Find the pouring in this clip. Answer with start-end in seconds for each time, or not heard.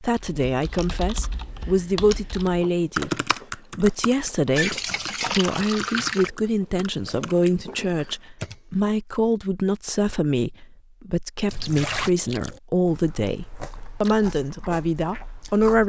4.5-6.3, 11.4-12.1.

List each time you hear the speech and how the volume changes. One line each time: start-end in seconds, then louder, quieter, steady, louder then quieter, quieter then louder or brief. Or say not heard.
0.0-15.8 steady.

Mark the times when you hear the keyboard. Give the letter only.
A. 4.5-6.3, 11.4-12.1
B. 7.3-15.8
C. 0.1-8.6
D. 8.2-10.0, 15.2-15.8
C.